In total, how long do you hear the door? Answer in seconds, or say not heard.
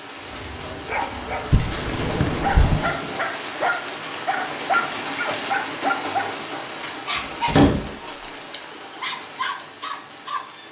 2 s.